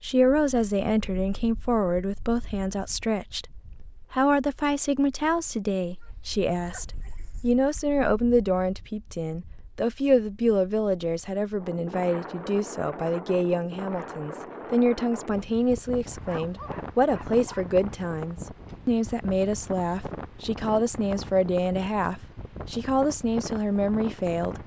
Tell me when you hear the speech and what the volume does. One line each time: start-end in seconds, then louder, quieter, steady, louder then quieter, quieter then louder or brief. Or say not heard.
0.0-24.6 steady.